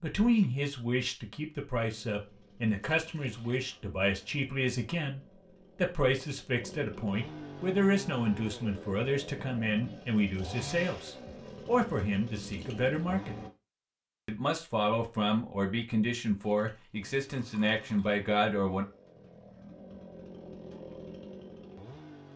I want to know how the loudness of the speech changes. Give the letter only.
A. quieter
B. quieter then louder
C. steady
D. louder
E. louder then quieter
C.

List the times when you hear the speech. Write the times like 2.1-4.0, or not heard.
0.0-13.3, 14.2-18.9.